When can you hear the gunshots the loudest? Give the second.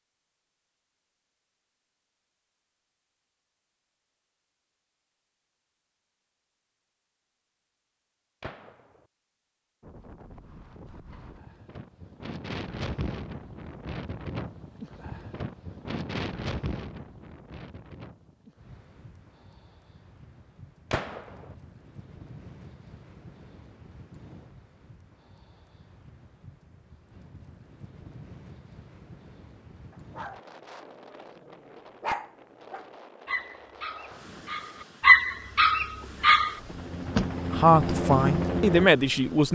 21 s.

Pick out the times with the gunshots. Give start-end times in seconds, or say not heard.
8.4-9.1, 20.9-21.6.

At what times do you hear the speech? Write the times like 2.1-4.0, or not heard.
37.5-39.5.